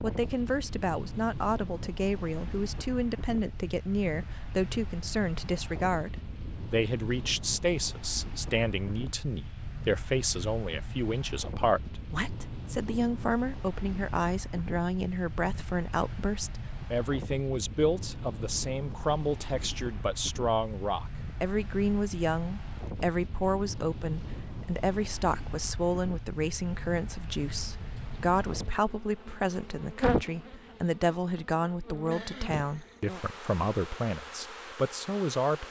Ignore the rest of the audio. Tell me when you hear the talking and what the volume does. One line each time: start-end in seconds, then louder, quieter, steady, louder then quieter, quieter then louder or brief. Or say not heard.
0.0-35.6 steady.